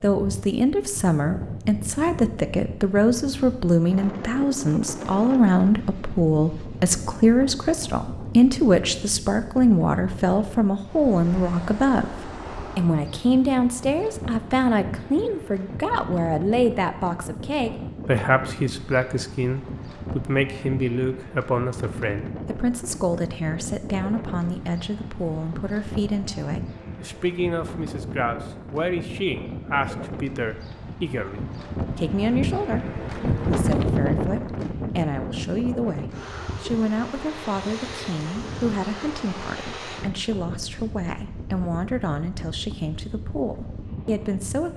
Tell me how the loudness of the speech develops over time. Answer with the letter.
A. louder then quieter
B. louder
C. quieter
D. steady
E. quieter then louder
C.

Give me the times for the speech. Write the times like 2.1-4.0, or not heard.
0.0-44.7.